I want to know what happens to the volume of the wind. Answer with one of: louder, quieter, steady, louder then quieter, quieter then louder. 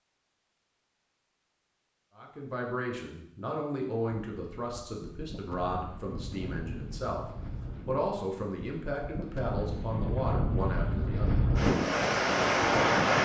louder.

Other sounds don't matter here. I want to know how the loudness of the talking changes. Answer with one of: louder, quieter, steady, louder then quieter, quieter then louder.
steady.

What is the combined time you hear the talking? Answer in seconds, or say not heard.
9 s.